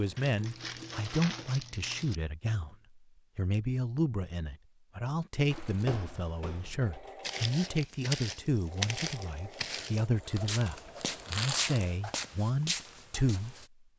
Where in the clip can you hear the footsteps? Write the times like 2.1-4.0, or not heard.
5.5-13.7.